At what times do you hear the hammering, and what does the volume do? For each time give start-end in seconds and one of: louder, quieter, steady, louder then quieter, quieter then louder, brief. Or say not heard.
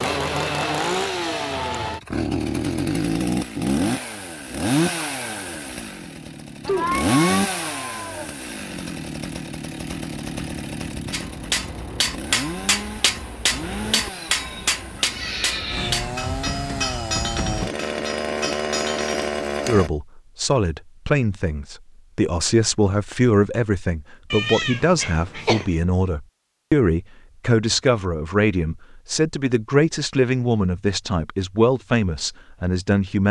11.1-19.9 quieter.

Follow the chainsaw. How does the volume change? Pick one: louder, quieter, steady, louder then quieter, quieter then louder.
quieter then louder.